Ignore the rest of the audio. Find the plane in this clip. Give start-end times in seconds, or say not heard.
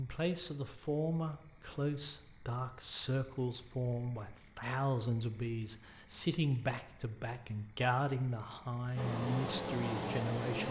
8.9-10.6.